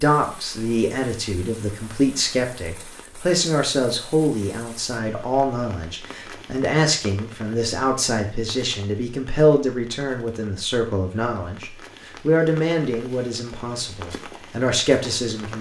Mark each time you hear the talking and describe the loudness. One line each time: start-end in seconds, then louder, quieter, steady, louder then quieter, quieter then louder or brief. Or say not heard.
0.0-15.5 steady.